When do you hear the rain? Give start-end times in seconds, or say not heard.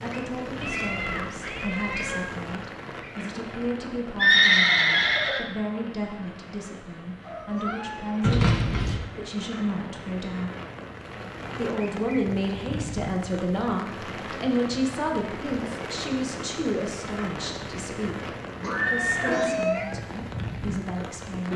0.0-21.5.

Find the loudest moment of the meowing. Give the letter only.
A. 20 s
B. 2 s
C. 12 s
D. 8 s
A.